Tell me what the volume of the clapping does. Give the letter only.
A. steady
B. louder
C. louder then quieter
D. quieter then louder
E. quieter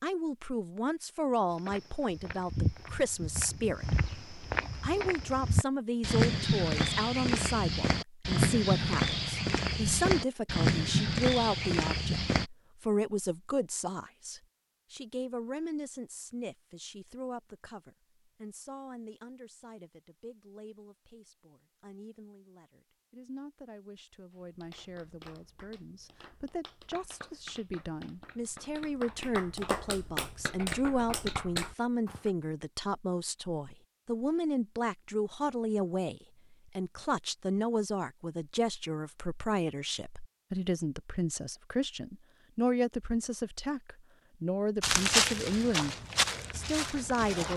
B.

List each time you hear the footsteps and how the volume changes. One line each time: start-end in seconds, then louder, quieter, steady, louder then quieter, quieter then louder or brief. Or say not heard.
1.5-12.4 louder
44.8-47.5 brief.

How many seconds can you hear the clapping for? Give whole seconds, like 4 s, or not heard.
8 s.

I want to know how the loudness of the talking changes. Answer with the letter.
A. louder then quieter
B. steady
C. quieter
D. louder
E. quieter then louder
E.